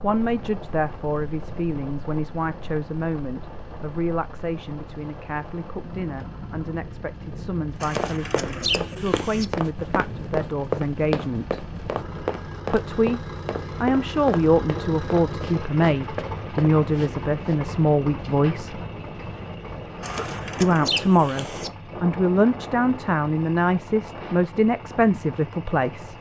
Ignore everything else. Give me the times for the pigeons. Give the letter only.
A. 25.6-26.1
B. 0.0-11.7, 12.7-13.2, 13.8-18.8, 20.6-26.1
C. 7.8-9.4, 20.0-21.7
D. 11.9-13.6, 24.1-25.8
C.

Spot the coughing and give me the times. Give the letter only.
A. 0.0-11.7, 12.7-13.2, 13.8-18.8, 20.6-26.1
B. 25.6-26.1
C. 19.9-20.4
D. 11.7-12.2
C.